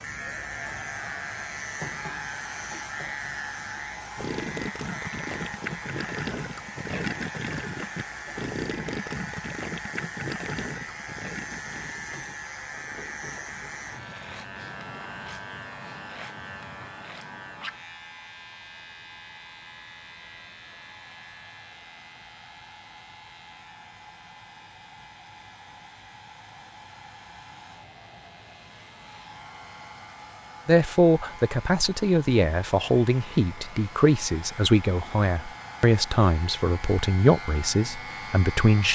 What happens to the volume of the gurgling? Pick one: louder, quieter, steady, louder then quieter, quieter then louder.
quieter.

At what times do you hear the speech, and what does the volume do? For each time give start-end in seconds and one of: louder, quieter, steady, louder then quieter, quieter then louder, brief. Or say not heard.
30.6-38.8 steady.